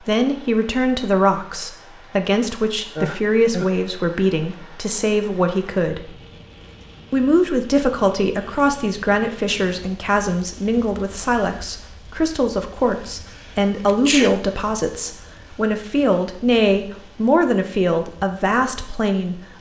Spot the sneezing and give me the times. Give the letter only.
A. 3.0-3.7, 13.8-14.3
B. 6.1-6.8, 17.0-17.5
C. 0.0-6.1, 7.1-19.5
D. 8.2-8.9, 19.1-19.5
A.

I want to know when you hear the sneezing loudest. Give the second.
14 s.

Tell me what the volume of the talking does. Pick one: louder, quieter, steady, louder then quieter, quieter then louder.
steady.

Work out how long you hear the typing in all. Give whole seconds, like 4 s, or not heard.
not heard.